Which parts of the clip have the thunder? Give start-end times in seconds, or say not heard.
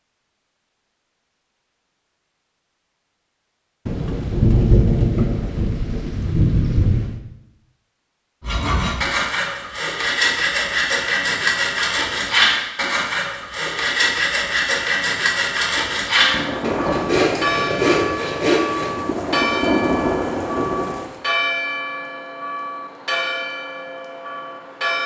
3.9-7.2, 16.3-21.2.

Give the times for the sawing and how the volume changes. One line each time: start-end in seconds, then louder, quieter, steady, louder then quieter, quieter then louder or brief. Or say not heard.
8.4-18.9 steady.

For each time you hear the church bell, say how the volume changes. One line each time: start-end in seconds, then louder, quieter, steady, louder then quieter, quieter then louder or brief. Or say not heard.
16.1-25.0 steady.